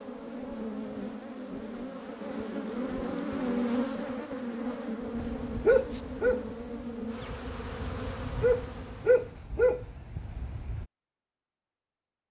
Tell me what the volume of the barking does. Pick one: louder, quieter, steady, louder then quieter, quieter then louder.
quieter then louder.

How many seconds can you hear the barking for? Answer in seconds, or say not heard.
6 s.